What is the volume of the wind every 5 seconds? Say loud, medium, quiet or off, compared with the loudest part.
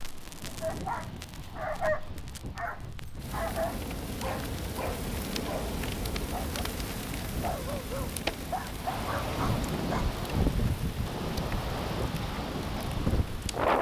quiet, medium, loud.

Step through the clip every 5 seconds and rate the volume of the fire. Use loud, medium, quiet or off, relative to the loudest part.
medium, loud, medium.